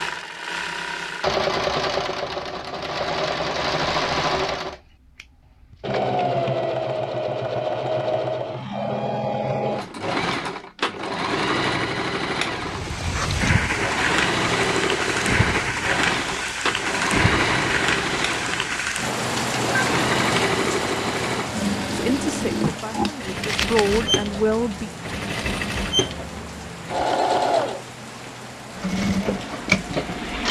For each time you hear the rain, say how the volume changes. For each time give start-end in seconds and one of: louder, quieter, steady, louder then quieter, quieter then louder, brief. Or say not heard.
12.6-30.4 quieter.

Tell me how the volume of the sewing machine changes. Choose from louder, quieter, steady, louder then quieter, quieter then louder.
steady.